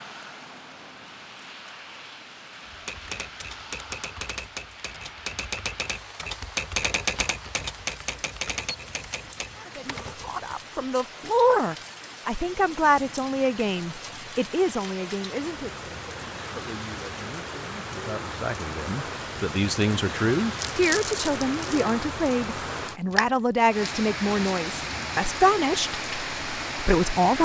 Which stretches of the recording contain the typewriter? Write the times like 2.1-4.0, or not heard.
2.6-10.6.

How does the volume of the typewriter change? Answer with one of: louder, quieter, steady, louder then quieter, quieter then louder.
louder then quieter.